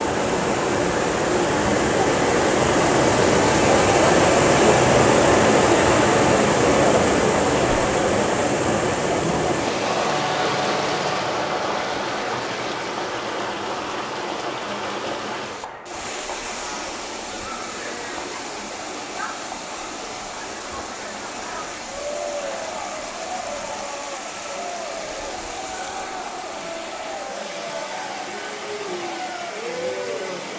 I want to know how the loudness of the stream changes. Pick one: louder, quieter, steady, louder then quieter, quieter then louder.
quieter.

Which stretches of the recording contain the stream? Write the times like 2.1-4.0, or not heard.
0.0-30.5.